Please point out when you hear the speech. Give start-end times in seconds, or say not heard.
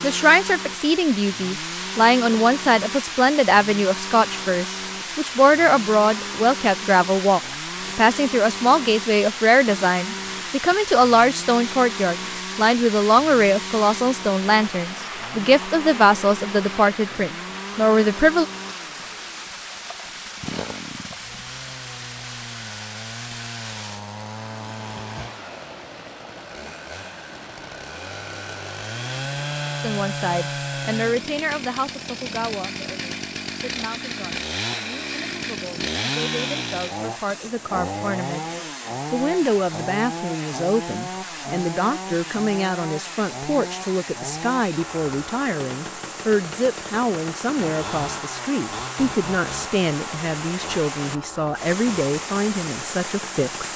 0.0-18.4, 29.8-53.7.